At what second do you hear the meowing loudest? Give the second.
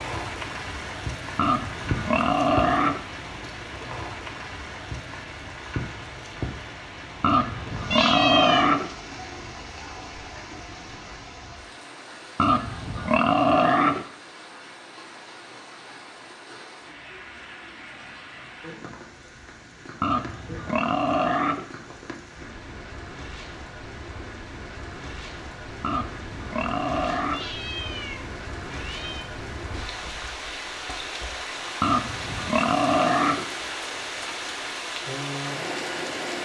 8 s.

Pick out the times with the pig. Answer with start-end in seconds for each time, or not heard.
1.4-3.0, 7.2-8.9, 12.3-14.1, 20.0-21.6, 25.8-27.5, 31.8-33.5.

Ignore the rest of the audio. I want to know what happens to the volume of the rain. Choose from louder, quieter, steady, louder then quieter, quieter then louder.
quieter then louder.